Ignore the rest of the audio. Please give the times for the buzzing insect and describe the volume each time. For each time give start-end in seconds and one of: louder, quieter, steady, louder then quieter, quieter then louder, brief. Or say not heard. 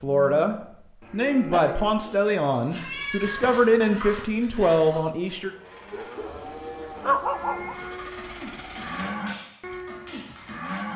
not heard.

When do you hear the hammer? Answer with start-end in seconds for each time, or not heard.
8.8-10.9.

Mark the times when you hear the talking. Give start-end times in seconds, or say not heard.
0.0-5.5.